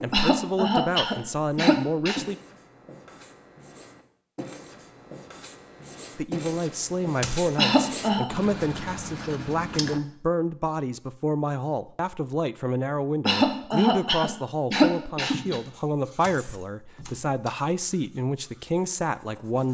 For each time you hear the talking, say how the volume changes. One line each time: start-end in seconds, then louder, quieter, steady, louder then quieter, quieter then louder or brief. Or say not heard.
0.0-2.4 brief
6.2-19.6 steady.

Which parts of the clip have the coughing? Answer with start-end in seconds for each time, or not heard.
0.1-2.2, 7.5-8.2, 13.2-15.6.